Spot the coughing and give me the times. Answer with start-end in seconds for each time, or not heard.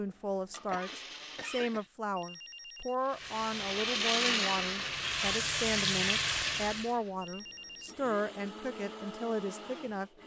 0.7-1.9.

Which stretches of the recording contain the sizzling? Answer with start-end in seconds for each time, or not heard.
3.1-7.0.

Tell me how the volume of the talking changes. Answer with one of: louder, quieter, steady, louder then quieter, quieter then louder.
steady.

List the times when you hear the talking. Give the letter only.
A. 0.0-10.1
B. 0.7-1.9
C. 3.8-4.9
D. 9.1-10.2
A.